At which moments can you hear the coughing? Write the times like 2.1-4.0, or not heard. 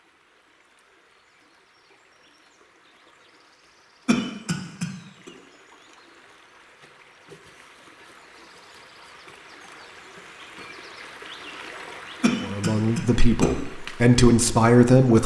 4.0-5.3, 12.2-13.5.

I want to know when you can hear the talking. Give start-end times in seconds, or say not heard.
12.4-15.2.